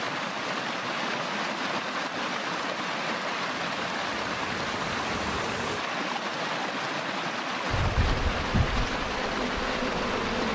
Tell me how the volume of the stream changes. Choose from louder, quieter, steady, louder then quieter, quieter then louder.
steady.